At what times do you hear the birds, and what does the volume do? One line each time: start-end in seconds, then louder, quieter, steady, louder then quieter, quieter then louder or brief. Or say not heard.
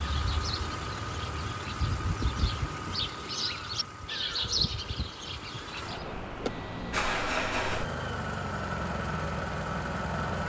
0.0-6.2 louder then quieter.